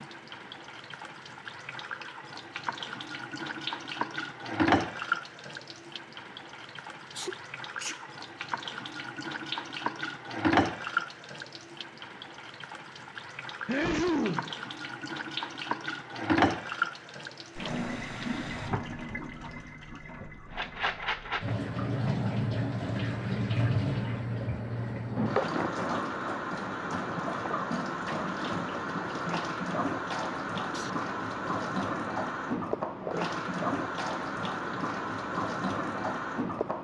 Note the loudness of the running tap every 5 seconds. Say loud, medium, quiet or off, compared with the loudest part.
loud, medium, loud, loud, loud, loud, loud, loud.